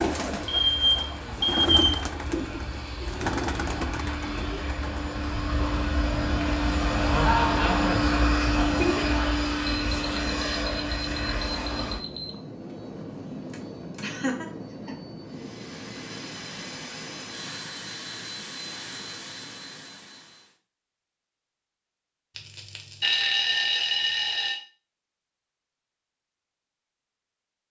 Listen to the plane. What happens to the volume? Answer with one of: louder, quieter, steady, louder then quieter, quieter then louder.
louder then quieter.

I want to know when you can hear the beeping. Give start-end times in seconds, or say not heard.
0.5-2.0, 9.7-12.3, 22.4-24.6.